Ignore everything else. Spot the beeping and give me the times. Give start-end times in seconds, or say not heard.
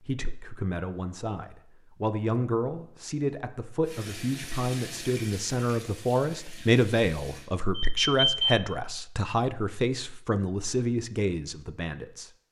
7.8-8.6.